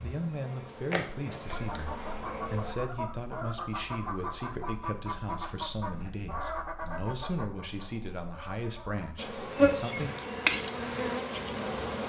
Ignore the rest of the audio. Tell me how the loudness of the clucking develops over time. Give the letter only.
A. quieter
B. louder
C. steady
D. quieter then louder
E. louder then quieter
A.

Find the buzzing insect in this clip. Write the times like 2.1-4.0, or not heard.
0.0-2.8, 9.2-12.0.